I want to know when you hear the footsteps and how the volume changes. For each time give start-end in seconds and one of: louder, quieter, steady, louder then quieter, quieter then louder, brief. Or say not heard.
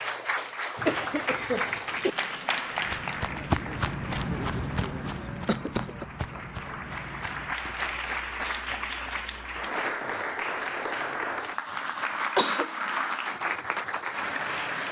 2.6-8.2 quieter.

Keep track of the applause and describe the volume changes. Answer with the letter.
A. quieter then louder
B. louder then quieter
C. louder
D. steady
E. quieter
A.